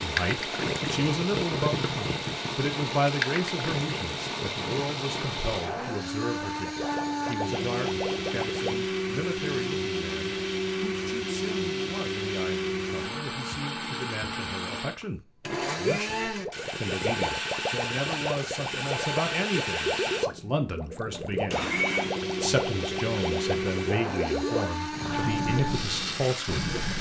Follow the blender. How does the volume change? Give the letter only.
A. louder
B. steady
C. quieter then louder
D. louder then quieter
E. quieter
B.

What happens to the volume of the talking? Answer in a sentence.
The volume of the talking goes down, then up.